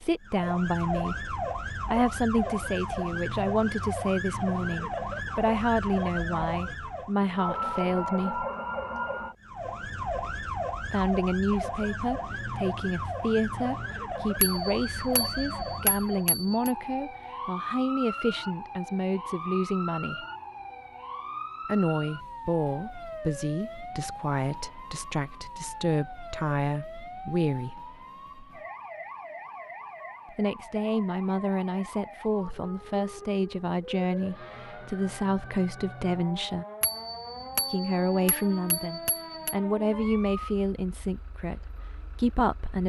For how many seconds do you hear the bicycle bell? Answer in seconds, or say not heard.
5 s.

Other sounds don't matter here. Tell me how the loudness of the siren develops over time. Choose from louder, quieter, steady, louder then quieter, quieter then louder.
quieter.